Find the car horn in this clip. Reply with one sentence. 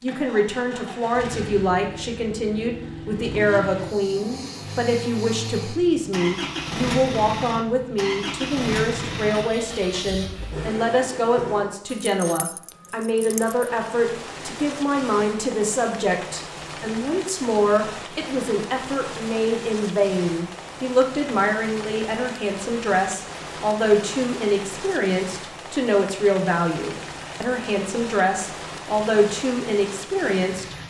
The car horn can't be heard in this clip.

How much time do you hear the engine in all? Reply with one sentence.
The engine can be heard for 12 seconds in total.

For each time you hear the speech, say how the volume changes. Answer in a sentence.
You can hear the speech from 0.0 to 30.8 s, at a steady volume.